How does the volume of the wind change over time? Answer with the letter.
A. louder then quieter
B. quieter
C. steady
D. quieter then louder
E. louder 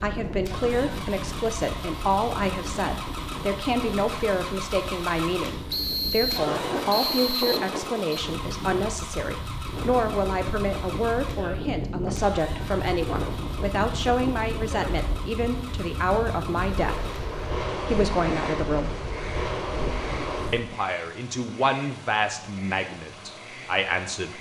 E.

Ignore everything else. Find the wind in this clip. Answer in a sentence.
You can hear the wind from 0.0 to 20.6 s.